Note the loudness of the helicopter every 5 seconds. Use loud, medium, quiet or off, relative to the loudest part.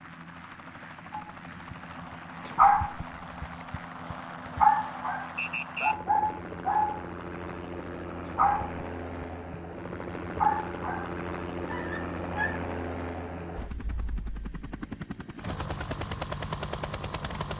medium, loud, loud, loud.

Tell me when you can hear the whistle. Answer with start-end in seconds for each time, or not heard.
5.3-6.0.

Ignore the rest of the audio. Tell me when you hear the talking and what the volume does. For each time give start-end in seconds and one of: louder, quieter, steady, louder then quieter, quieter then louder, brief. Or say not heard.
not heard.